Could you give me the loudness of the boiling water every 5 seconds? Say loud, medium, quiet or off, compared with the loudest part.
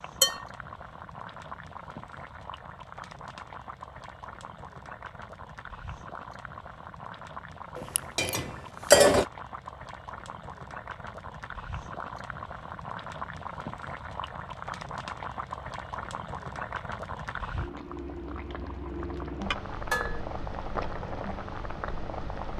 medium, medium, loud, loud, loud.